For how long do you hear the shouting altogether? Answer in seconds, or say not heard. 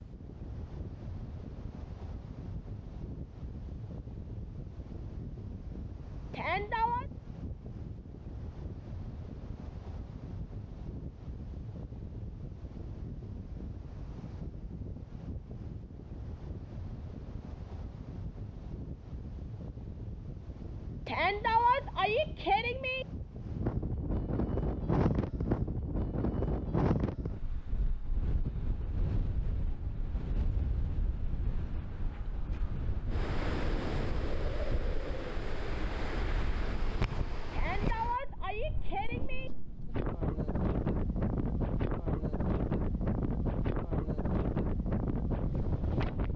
5 s.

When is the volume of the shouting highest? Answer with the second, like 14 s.
22 s.